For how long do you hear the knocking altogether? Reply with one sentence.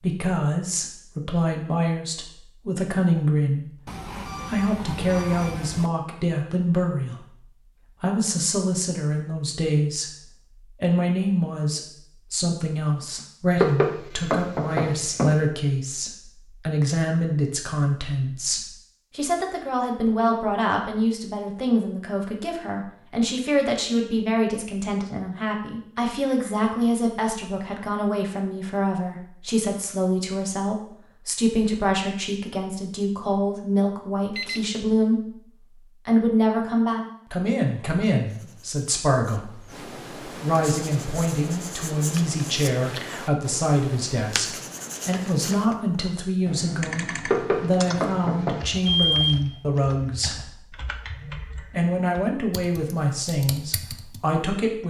The knocking can be heard for 3 seconds in total.